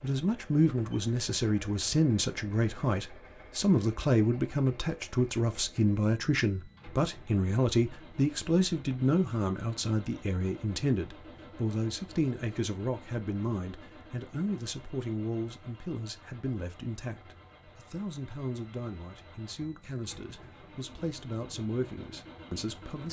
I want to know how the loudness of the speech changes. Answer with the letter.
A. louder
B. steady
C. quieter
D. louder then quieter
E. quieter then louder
C.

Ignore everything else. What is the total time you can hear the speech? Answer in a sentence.
The speech can be heard for 23 seconds in total.